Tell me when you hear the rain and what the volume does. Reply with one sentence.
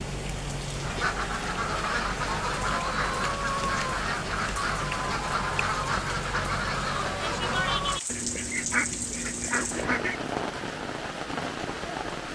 You can hear the rain from 0.0 to 12.3 s, at a steady volume.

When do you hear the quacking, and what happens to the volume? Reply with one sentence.
You can hear the quacking from 0.8 to 10.2 s, at a steady volume.